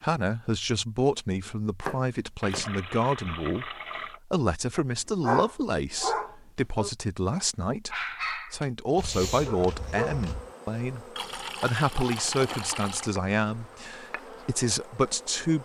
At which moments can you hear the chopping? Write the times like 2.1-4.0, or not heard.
1.9-2.7.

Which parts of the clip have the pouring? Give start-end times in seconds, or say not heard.
2.4-4.2, 11.2-13.1.